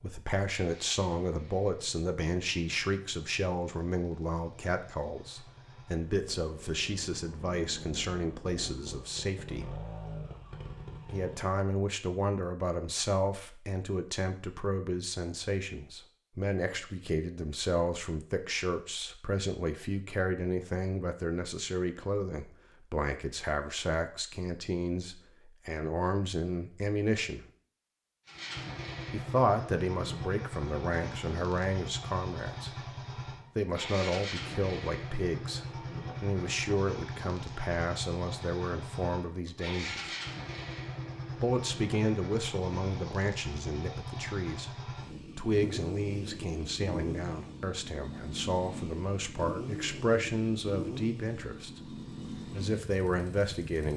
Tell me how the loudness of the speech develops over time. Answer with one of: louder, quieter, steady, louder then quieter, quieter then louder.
steady.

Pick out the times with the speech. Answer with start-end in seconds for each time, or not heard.
0.0-9.8, 11.1-27.4, 29.1-32.9, 33.5-40.1, 41.4-53.9.